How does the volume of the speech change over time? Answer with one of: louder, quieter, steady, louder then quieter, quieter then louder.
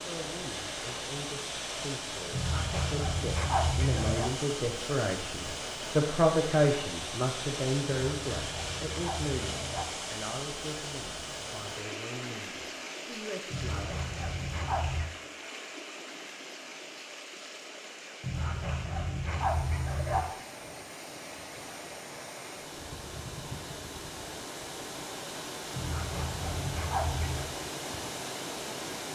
louder then quieter.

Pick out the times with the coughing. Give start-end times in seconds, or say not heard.
not heard.